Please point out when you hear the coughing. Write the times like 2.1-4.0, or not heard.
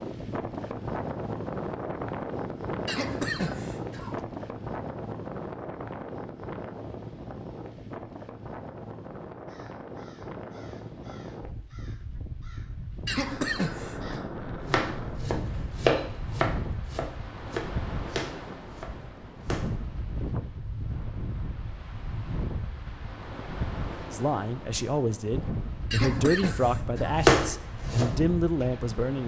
2.9-4.2, 13.1-14.2, 25.9-27.2.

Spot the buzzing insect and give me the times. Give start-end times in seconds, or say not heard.
not heard.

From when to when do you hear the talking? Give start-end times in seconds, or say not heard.
24.1-29.2.